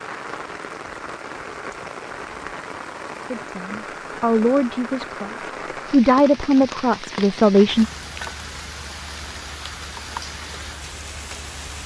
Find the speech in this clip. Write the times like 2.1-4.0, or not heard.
3.4-7.8.